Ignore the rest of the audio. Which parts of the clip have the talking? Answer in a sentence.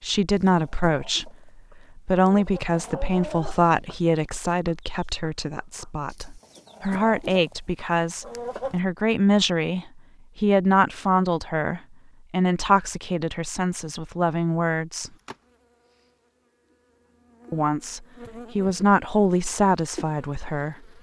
The talking can be heard from 0.0 to 15.1 s and from 17.5 to 20.8 s.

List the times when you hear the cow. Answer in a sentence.
You can't hear the cow here.